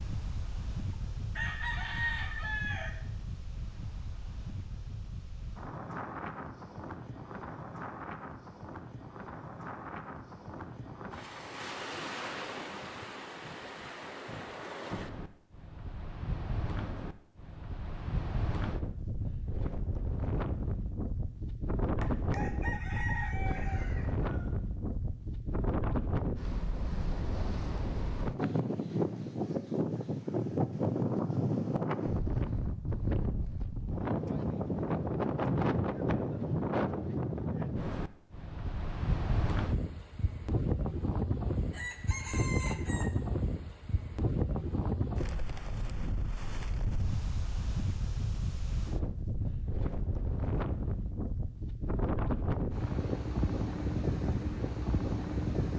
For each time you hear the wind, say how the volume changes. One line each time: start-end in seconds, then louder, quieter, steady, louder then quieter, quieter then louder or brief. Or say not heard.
0.0-55.7 louder.